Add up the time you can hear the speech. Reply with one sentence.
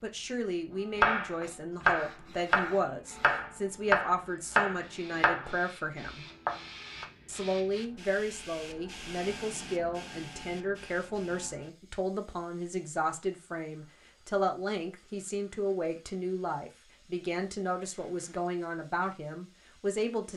You can hear the speech for 19 seconds altogether.